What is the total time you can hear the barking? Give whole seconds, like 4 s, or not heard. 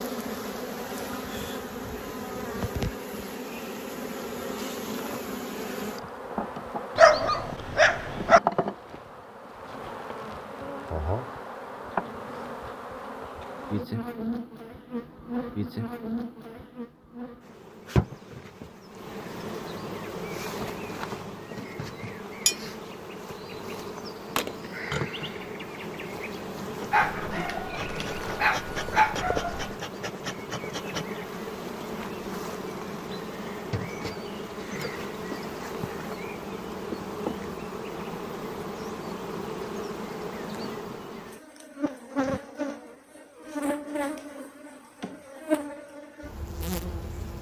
4 s.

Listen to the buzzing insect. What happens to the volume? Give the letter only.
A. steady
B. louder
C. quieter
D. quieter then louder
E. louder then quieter
A.